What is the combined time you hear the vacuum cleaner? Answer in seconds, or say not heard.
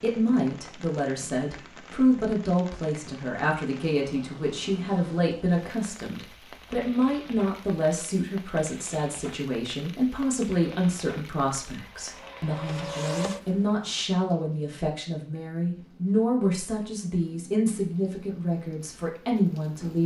2 s.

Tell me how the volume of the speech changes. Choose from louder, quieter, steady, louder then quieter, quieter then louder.
steady.